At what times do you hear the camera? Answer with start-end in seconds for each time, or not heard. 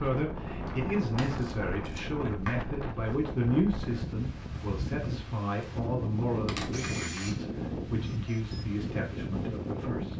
0.7-2.1, 6.5-7.5.